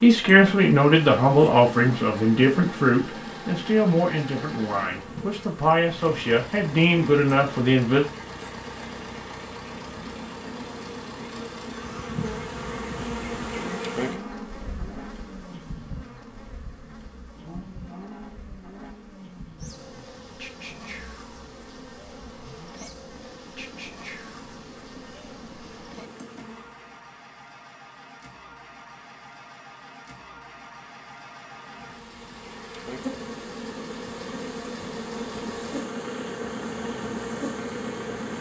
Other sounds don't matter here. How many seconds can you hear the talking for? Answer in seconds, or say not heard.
8 s.